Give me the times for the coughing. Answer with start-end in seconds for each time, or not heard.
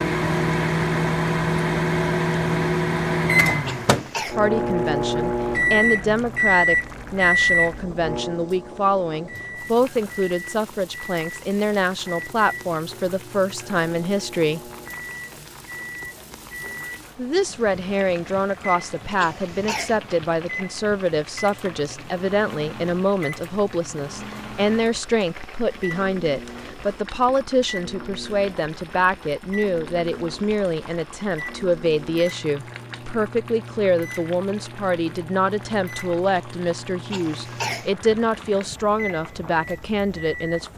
3.6-4.3, 19.1-20.0, 37.1-37.9.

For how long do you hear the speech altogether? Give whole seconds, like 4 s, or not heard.
34 s.